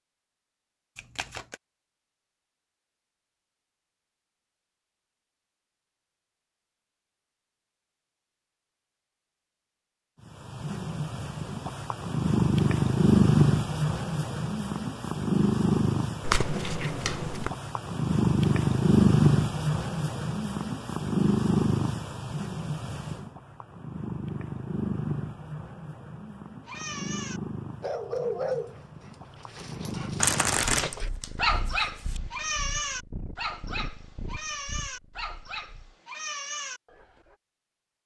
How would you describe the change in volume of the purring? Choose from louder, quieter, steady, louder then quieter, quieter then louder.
quieter.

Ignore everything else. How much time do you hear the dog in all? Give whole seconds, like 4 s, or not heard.
11 s.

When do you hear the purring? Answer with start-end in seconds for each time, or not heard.
10.4-35.9.